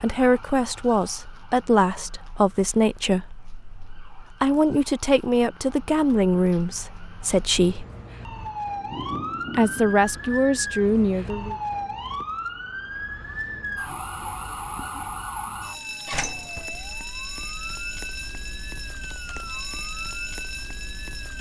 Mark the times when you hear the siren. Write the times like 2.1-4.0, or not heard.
0.0-21.3.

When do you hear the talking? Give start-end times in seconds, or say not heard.
0.0-7.8, 9.5-11.6.